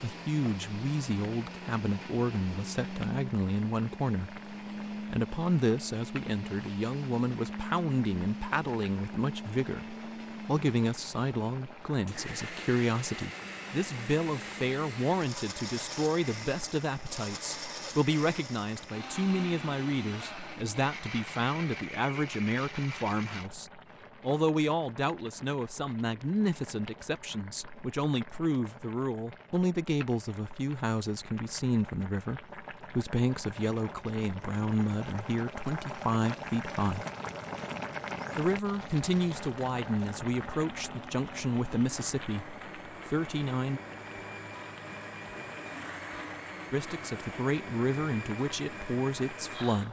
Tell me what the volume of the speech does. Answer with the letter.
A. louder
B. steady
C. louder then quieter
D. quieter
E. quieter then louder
B.